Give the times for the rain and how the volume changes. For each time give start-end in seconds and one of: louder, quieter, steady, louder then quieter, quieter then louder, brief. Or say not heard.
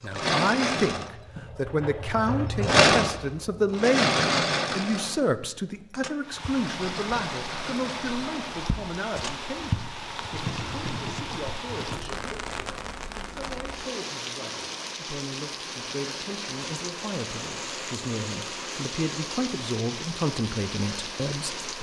6.2-21.7 steady.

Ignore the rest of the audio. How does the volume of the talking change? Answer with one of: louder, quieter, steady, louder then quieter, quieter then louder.
quieter then louder.